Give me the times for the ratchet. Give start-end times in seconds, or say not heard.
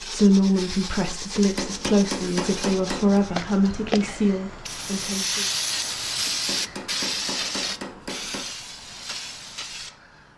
not heard.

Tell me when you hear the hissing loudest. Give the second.
6 s.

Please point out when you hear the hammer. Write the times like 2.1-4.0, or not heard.
1.4-3.2, 6.2-8.4.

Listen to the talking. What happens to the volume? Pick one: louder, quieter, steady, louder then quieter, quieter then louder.
steady.